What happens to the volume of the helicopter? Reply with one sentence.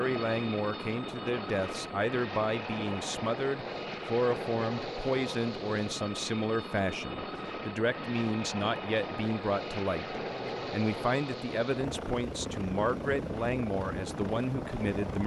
The volume of the helicopter stays about the same.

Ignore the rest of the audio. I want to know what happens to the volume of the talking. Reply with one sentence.
The volume of the talking stays about the same.